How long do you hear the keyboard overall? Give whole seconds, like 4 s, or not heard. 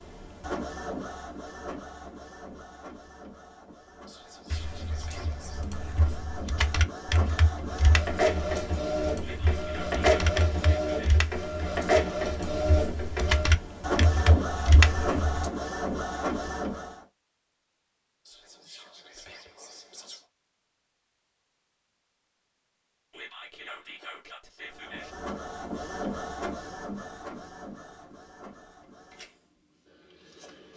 11 s.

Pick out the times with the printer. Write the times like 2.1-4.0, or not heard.
0.0-17.1, 24.6-30.7.